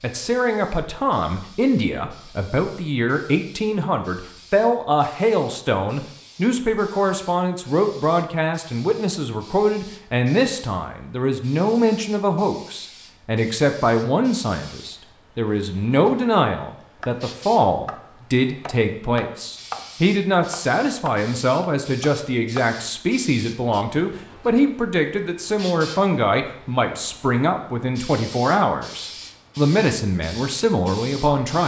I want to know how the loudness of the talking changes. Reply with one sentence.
The volume of the talking stays about the same.